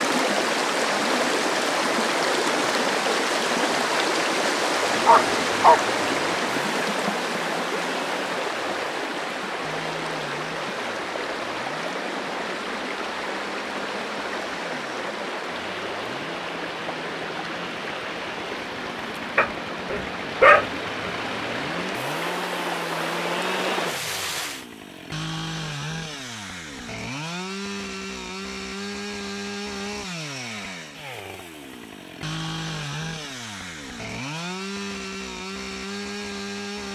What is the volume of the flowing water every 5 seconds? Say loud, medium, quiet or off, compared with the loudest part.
loud, loud, medium, medium, medium, off, off, off.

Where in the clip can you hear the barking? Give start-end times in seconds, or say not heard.
4.8-6.4, 19.4-21.1.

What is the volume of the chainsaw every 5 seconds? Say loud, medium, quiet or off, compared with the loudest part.
off, medium, medium, medium, loud, loud, loud, loud.